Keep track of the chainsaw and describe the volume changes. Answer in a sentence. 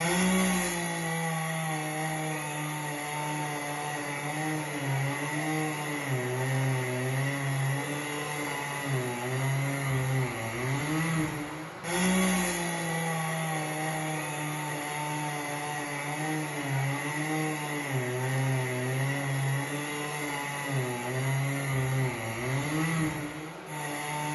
The loudness of the chainsaw stays about the same.